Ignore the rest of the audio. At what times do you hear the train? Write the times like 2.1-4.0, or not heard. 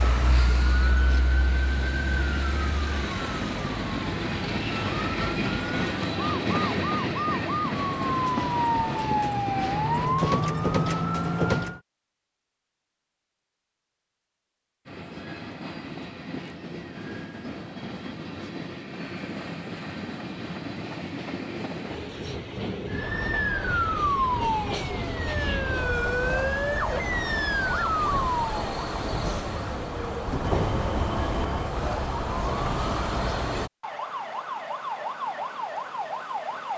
0.1-10.1, 14.8-33.7.